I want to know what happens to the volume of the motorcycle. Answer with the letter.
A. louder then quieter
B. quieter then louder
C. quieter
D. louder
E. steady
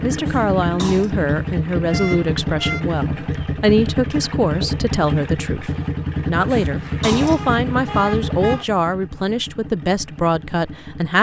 C.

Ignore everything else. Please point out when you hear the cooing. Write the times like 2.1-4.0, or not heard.
not heard.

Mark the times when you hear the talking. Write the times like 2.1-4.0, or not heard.
0.0-11.1.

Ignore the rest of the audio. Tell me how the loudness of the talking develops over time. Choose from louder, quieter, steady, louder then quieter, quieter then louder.
steady.